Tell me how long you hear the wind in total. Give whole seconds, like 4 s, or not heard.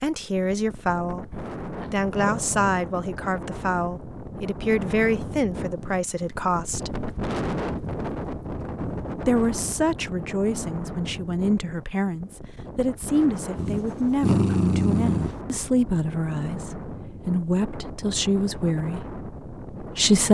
20 s.